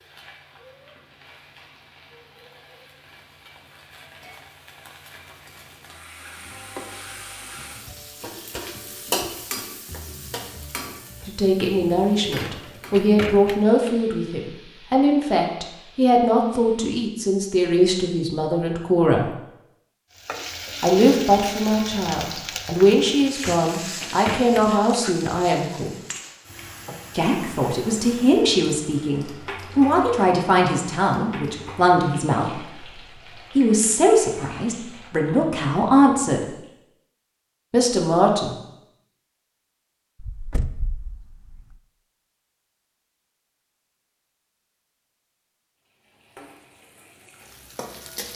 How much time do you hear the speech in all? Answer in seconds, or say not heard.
23 s.